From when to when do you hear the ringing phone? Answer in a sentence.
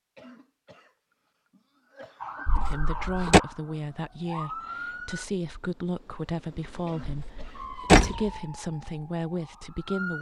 You can't hear the ringing phone here.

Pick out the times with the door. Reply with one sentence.
The door can be heard from 2.5 to 3.4 s and from 7.0 to 8.3 s.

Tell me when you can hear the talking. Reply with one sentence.
You can hear the talking from 2.6 to 10.1 s.